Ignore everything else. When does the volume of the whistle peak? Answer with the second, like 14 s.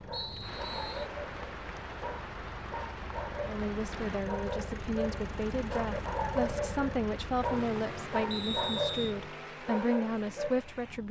9 s.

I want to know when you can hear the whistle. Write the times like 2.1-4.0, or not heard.
0.1-1.1, 8.3-9.2.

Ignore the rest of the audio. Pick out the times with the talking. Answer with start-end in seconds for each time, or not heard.
3.5-11.0.